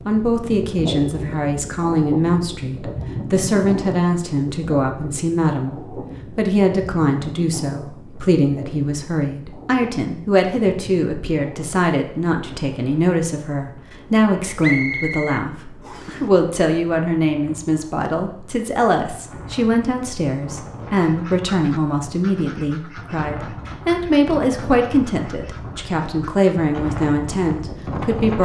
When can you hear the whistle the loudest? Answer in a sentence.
The loudest moment of the whistle is at 15 seconds.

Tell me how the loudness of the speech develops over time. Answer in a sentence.
The volume of the speech stays about the same.